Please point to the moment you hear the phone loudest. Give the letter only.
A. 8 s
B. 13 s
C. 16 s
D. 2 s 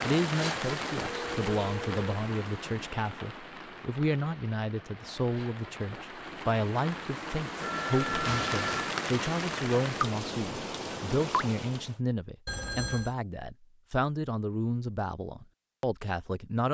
A.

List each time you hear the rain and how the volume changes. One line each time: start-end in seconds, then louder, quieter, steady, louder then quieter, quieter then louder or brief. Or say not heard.
0.0-11.9 quieter then louder.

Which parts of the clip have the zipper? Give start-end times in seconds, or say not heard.
not heard.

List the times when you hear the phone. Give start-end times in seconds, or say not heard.
1.0-2.1, 7.6-8.9, 12.4-13.2.